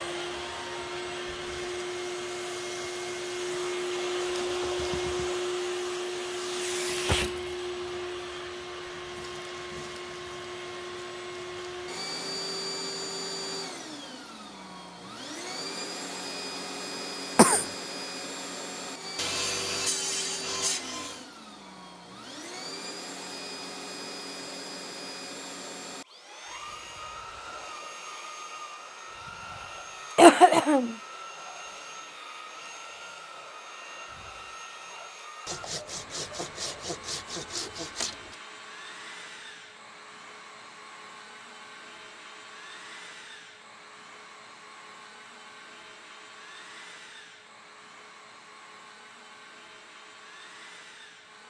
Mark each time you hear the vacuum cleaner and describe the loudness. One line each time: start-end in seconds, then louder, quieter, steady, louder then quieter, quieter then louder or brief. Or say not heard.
0.0-51.4 quieter.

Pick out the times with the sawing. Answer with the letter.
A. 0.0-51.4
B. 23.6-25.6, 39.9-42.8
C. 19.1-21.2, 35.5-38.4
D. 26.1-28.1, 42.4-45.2
C.